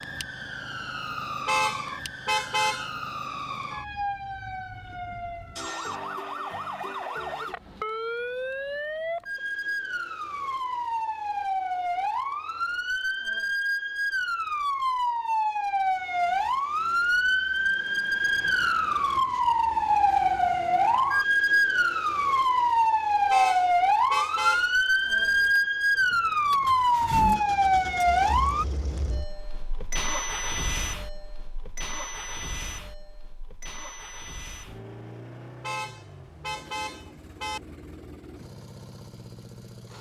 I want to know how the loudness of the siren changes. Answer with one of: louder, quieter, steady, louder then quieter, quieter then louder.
louder.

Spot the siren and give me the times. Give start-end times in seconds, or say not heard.
0.0-28.6.